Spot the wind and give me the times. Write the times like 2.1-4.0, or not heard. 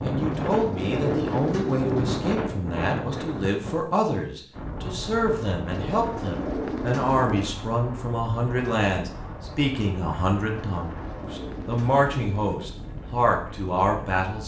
0.0-14.4.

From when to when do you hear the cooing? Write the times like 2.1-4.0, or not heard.
0.3-2.3, 5.7-7.5, 10.6-12.6.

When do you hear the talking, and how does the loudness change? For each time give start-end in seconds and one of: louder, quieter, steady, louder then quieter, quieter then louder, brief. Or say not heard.
0.0-14.4 steady.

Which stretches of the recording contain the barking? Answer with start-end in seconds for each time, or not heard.
not heard.